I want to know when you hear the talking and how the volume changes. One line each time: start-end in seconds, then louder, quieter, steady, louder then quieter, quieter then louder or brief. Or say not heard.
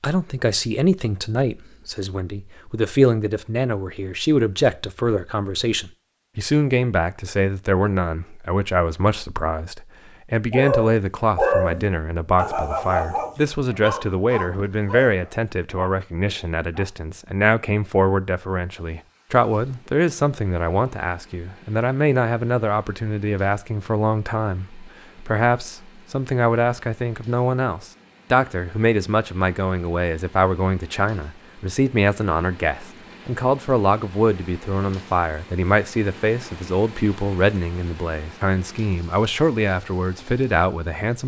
0.0-41.2 steady.